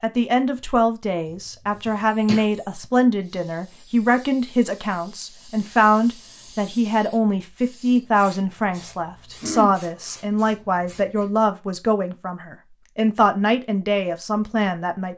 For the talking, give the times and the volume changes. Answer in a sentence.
You can hear the talking from 0.0 to 15.1 s, at a steady volume.